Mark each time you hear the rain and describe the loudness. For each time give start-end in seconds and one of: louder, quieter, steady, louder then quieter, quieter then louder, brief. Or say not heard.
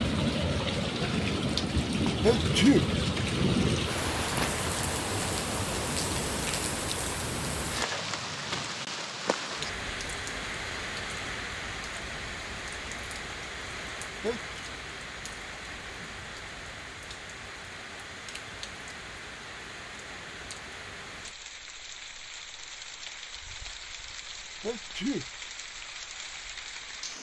0.0-27.1 quieter.